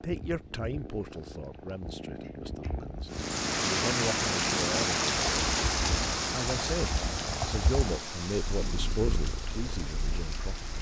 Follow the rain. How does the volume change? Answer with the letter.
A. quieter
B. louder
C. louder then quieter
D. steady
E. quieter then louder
A.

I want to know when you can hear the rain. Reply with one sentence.
The rain can be heard from 3.1 to 10.7 s.